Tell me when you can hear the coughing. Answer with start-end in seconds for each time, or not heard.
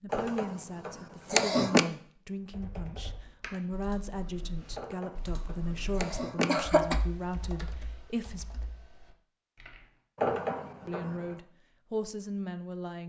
0.1-1.9, 4.8-7.0, 10.2-11.4.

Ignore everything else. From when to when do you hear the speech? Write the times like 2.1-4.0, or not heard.
0.0-8.4, 10.8-13.0.